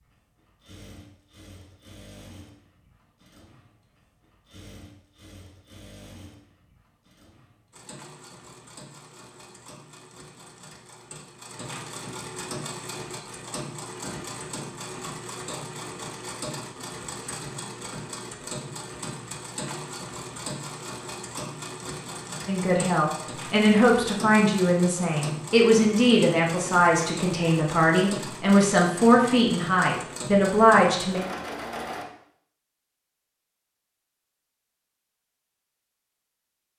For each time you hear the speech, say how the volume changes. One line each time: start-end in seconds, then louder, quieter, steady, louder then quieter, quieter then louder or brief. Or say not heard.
22.4-31.2 steady.